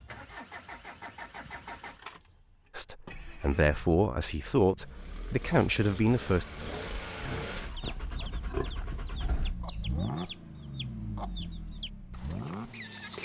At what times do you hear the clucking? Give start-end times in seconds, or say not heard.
7.7-13.2.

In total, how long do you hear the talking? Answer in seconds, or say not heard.
4 s.